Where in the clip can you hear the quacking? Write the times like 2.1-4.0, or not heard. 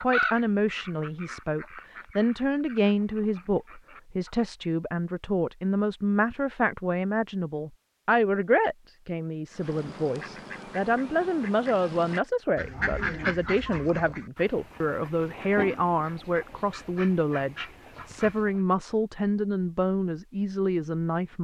0.0-4.5, 9.5-18.6.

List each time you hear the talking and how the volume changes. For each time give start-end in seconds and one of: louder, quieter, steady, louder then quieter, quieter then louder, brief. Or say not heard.
0.0-21.3 steady.